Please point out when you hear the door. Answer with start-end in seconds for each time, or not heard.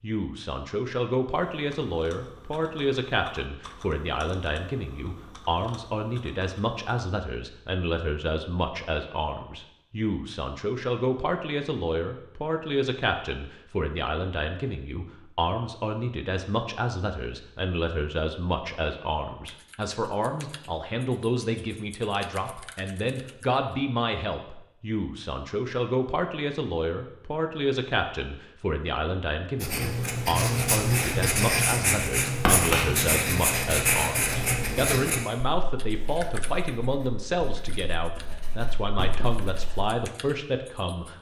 not heard.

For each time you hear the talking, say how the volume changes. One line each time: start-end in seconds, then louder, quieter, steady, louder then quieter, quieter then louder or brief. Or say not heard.
0.0-41.1 steady.